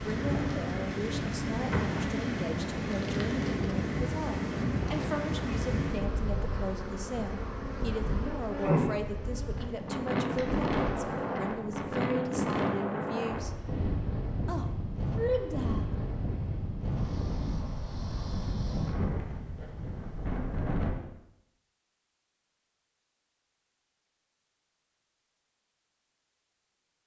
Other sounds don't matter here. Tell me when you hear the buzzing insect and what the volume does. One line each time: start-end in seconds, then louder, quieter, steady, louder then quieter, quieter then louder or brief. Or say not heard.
0.0-11.6 louder then quieter.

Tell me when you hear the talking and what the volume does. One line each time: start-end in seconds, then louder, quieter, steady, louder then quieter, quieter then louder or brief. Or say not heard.
0.0-13.6 steady
14.4-15.8 brief.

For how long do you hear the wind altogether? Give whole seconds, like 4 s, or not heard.
21 s.